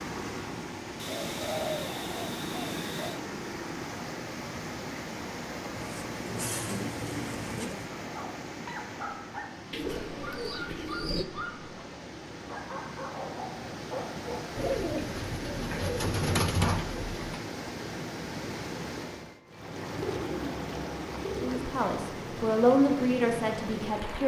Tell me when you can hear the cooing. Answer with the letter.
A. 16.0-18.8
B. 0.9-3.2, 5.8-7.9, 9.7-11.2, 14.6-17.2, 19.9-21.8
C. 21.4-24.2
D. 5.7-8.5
B.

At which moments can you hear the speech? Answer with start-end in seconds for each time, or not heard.
21.4-24.2.